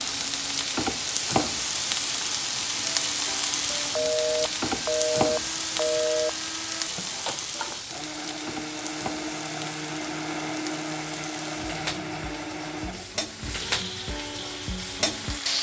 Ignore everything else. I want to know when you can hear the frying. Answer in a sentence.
You can hear the frying from 0.0 to 15.5 s.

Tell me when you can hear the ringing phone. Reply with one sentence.
You can hear the ringing phone from 4.0 to 6.3 s.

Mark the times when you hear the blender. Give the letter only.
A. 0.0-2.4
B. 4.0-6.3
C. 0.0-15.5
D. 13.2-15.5
C.